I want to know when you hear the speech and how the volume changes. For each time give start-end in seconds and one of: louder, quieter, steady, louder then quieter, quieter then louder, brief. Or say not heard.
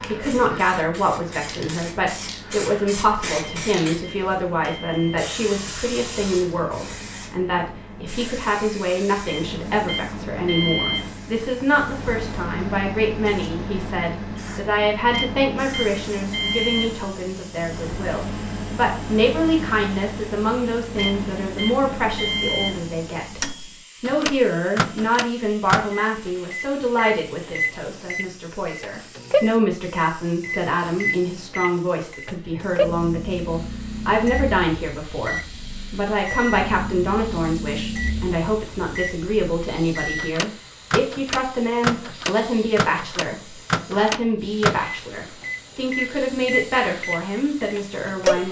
0.0-23.4 steady
24.0-48.4 steady.